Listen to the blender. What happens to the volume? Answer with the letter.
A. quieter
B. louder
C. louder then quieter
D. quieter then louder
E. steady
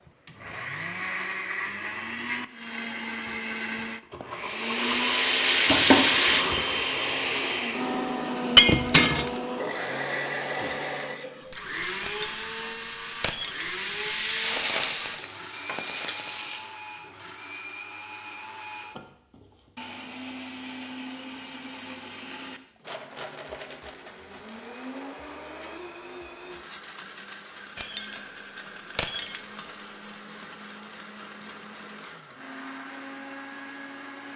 A.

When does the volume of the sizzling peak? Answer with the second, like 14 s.
6 s.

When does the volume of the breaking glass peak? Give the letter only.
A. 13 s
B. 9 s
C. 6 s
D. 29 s
B.